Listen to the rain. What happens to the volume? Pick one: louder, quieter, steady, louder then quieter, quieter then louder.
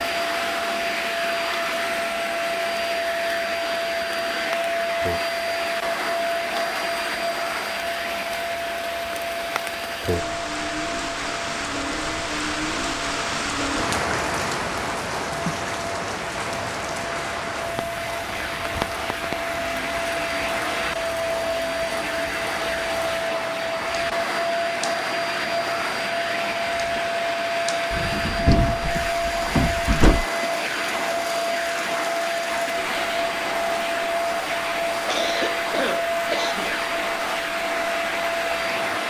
louder then quieter.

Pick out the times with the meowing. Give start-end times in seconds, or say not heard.
not heard.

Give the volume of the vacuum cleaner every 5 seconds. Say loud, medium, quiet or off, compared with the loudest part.
loud, loud, medium, medium, loud, loud, loud, loud.